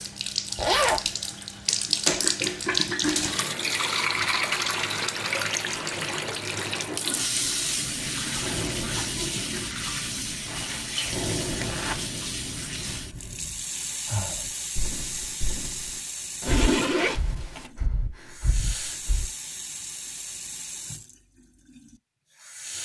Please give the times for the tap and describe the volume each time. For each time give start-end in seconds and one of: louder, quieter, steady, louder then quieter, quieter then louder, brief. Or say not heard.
0.0-22.7 quieter.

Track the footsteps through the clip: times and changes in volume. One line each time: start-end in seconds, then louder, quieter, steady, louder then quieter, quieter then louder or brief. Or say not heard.
not heard.